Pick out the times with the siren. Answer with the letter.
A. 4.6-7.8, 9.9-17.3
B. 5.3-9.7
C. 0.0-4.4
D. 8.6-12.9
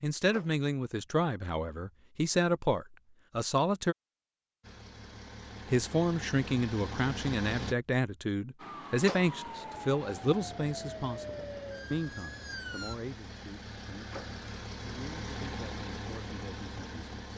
D.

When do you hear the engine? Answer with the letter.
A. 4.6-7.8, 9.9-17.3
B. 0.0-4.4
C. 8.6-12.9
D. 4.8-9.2
A.